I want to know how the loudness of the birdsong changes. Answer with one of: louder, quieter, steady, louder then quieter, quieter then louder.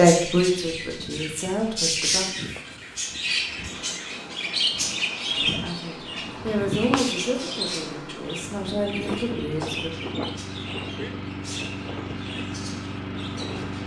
quieter.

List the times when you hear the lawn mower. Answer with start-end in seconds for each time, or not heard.
8.3-13.8.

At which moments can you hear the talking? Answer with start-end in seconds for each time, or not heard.
0.0-2.3, 5.3-9.9.